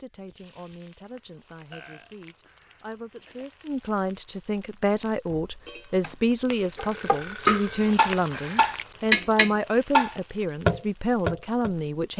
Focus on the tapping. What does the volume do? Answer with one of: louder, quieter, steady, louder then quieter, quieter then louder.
louder.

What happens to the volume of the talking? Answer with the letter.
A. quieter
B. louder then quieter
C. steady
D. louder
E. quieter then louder
D.